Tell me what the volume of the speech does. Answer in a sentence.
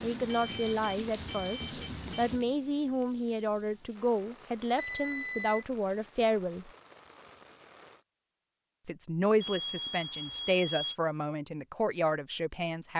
The volume of the speech stays about the same.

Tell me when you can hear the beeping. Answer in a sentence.
The beeping can be heard from 0.2 to 2.3 s, from 4.8 to 5.7 s and from 9.4 to 10.9 s.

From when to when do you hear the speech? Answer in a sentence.
You can hear the speech from 0.0 to 6.7 s and from 8.8 to 12.9 s.